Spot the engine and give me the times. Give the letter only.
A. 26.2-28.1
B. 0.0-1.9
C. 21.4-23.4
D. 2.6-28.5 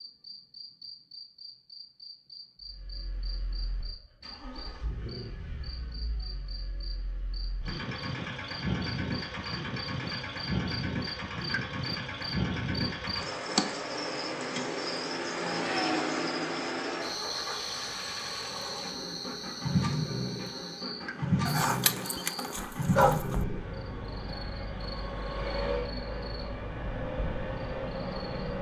D.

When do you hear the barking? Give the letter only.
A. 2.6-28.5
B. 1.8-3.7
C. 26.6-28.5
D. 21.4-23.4
D.